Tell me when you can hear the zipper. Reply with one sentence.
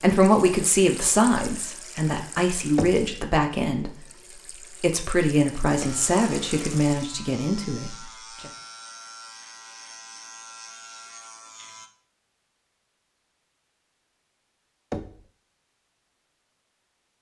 The zipper can't be heard in this clip.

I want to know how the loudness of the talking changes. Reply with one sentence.
The volume of the talking goes down.